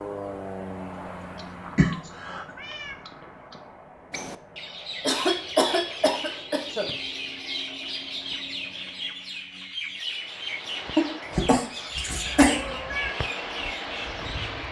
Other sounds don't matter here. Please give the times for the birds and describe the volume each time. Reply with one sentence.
The birds can be heard from 4.1 to 14.6 s, at a steady volume.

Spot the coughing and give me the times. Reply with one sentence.
You can hear the coughing from 1.8 to 2.5 s, from 5.0 to 6.9 s and from 10.9 to 12.6 s.